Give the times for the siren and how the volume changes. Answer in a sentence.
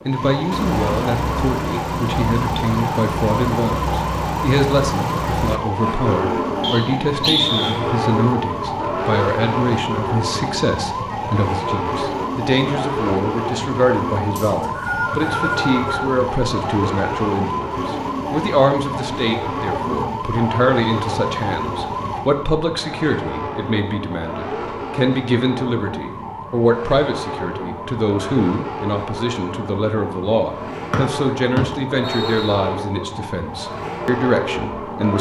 The siren can be heard from 0.0 to 35.1 s, getting quieter.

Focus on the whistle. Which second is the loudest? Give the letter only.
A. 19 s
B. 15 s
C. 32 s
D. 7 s
D.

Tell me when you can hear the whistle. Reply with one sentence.
You can hear the whistle from 6.6 to 7.8 s, from 14.3 to 16.1 s and from 30.9 to 32.5 s.